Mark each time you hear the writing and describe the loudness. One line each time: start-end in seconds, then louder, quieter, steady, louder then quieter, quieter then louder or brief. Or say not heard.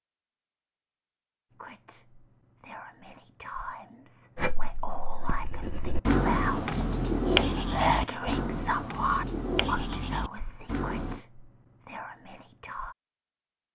4.3-11.2 louder then quieter.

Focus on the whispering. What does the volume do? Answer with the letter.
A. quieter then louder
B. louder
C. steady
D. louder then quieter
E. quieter
D.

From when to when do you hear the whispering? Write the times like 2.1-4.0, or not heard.
1.5-12.9.